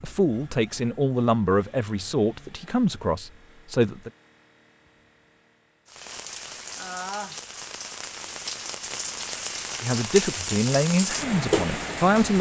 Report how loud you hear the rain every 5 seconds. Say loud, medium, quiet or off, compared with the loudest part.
off, medium, loud.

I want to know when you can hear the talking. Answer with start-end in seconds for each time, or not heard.
0.0-4.1, 9.8-12.3.